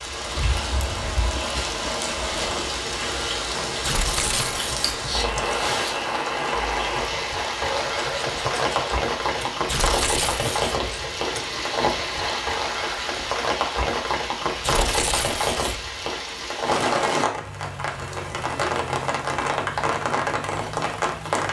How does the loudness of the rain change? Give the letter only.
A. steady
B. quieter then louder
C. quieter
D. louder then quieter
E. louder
A.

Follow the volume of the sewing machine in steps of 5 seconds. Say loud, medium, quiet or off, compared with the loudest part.
loud, loud, loud, off, off.